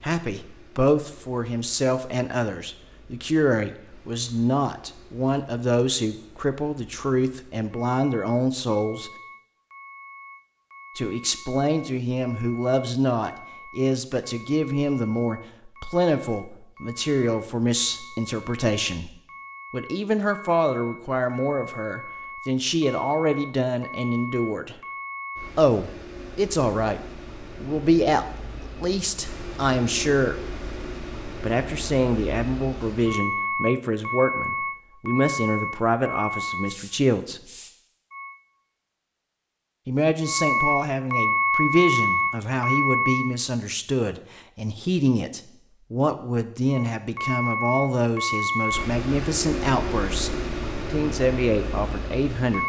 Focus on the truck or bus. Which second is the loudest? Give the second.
42 s.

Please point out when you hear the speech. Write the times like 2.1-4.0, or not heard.
0.0-9.1, 10.9-19.1, 19.7-24.8, 25.6-30.4, 31.4-37.4, 39.9-52.6.